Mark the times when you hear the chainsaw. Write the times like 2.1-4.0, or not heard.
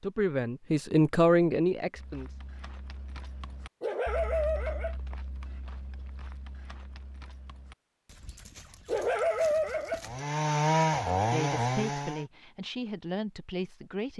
10.1-12.2.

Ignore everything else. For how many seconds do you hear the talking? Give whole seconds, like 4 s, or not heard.
5 s.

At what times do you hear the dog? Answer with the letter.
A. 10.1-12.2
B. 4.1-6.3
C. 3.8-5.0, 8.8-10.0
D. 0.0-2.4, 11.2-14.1
C.